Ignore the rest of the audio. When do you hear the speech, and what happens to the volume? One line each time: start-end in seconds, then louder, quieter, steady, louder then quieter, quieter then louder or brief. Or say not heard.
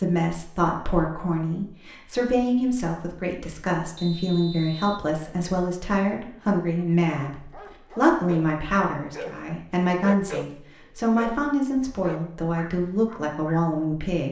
0.0-14.2 steady.